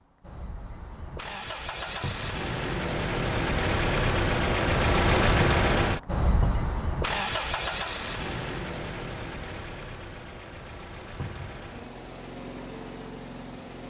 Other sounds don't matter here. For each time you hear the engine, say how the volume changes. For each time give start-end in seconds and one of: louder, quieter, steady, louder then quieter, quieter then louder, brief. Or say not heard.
0.0-13.8 louder then quieter.